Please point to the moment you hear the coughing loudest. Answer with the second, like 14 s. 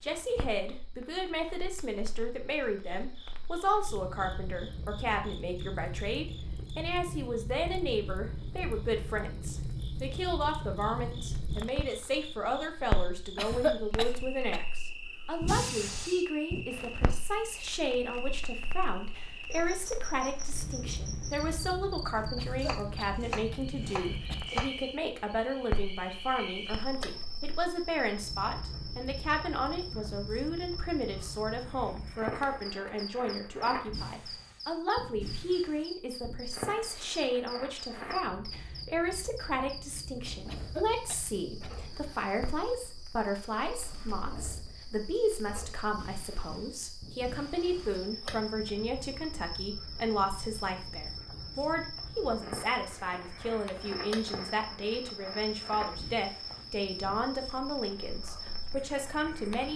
14 s.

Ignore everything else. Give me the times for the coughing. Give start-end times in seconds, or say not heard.
13.3-14.6, 22.4-24.4, 40.5-42.3.